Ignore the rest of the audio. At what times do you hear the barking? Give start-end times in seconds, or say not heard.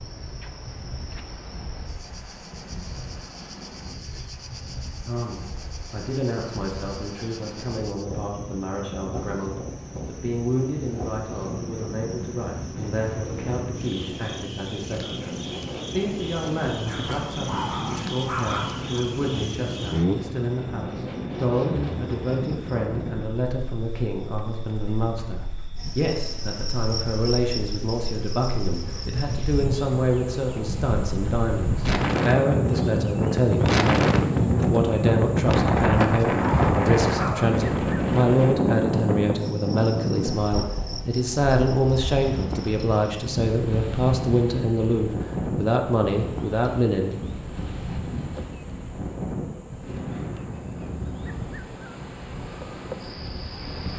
16.9-19.1, 35.8-37.5.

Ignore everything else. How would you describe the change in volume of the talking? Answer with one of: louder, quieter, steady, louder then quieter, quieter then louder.
louder.